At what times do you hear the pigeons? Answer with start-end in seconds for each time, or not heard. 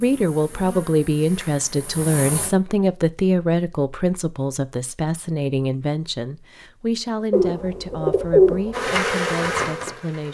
7.3-8.8.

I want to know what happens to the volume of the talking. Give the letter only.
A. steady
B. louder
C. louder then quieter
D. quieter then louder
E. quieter
E.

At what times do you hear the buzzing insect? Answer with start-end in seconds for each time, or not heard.
0.0-2.5, 8.7-10.3.